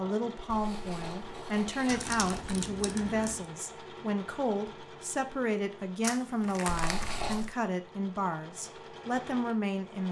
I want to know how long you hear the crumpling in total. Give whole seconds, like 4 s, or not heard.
3 s.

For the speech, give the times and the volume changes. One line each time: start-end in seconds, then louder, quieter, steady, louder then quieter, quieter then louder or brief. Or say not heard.
0.0-10.0 steady.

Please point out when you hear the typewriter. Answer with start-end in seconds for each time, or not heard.
not heard.